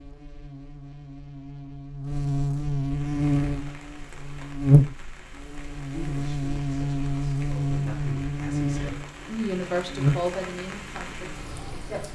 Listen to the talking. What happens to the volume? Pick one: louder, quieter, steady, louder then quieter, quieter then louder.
louder then quieter.